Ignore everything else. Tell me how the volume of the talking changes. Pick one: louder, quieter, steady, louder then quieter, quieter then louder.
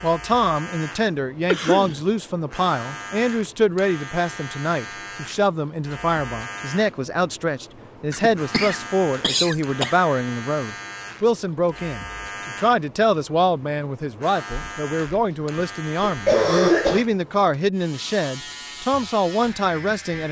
steady.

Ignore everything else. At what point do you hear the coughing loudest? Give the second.
17 s.